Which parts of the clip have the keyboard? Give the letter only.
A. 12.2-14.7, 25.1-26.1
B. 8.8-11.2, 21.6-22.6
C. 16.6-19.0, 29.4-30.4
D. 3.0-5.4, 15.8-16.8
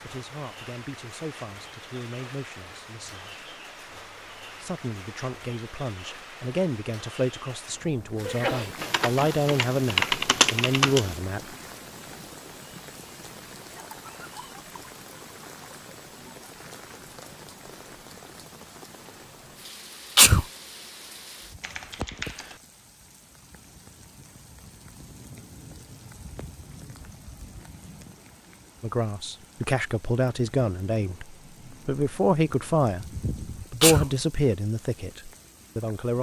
B.